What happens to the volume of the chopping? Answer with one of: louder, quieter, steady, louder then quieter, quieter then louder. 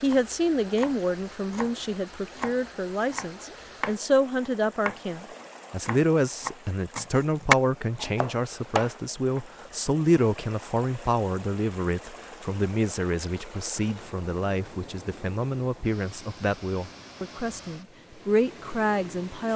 louder then quieter.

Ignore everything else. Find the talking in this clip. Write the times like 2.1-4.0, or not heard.
0.0-19.5.